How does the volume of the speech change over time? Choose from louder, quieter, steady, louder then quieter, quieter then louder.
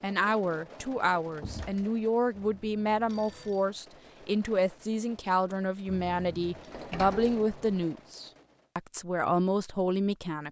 steady.